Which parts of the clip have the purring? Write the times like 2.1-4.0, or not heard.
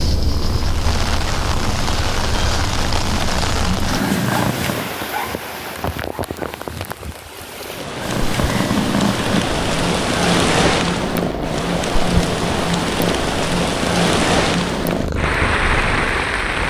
0.0-5.0, 8.0-16.6.